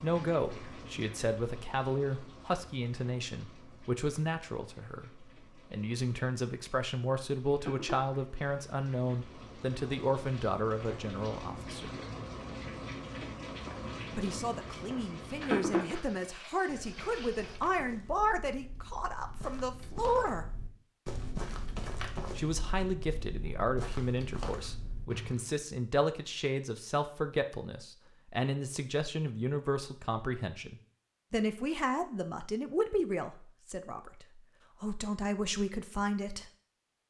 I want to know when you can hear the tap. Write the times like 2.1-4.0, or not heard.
0.0-17.6.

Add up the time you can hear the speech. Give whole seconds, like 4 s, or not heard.
32 s.